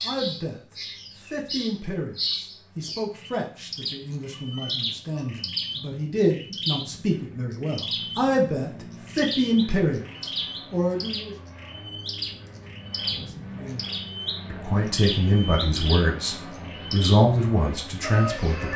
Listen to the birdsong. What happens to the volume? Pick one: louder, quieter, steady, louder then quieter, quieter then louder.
steady.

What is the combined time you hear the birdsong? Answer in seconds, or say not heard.
19 s.